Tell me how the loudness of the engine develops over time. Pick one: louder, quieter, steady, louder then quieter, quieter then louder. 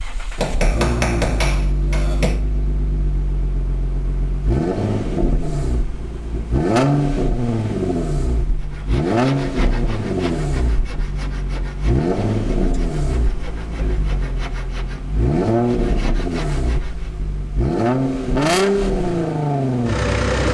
louder.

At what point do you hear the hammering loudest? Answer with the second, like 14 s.
1 s.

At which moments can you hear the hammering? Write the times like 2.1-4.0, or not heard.
0.3-2.5.